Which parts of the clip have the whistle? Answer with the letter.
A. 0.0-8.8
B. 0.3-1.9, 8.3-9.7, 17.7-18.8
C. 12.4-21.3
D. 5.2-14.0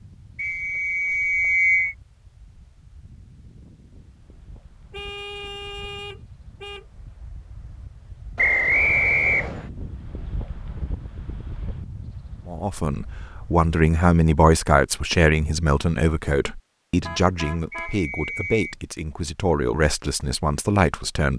B.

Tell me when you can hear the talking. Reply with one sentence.
You can hear the talking from 12.4 to 21.3 s.